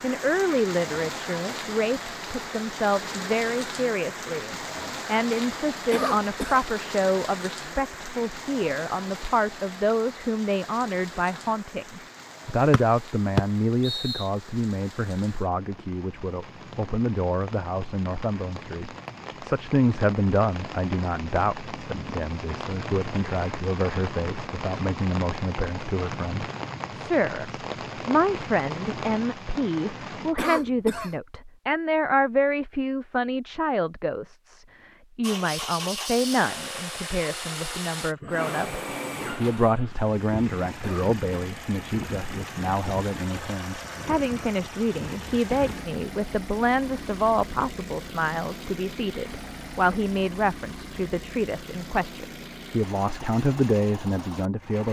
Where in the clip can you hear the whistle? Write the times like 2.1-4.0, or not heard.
12.7-14.3.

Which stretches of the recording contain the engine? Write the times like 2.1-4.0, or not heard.
35.2-54.8.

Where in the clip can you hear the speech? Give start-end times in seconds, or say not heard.
0.0-54.8.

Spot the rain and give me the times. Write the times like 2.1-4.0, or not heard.
0.0-30.4.